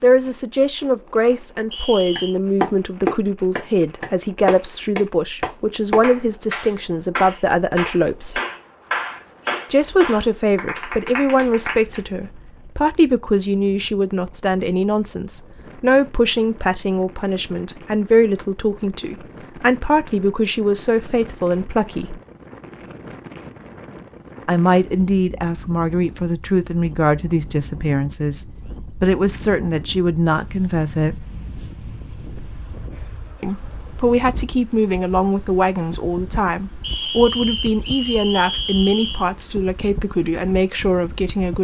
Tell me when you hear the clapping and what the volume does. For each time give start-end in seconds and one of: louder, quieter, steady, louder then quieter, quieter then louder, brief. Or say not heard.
2.1-12.1 quieter.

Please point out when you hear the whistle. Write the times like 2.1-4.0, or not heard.
1.7-2.4, 36.8-39.2.